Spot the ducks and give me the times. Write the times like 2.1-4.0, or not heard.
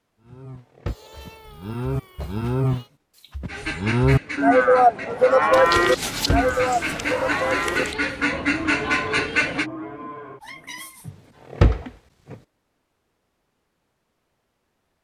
3.5-9.7.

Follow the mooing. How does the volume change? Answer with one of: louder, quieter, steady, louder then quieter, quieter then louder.
louder then quieter.